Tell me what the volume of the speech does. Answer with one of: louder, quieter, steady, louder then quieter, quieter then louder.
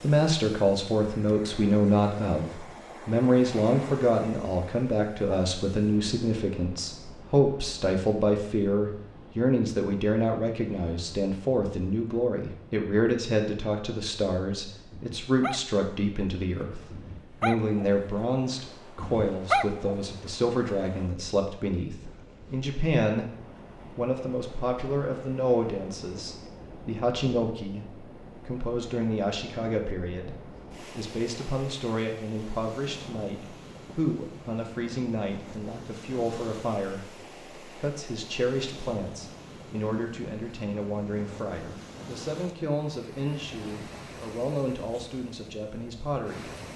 quieter.